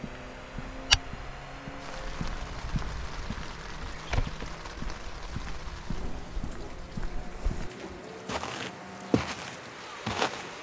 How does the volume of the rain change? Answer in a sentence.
The volume of the rain stays about the same.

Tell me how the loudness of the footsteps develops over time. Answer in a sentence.
The volume of the footsteps goes down, then up.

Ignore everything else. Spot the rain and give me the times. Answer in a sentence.
You can hear the rain from 1.8 to 10.5 s.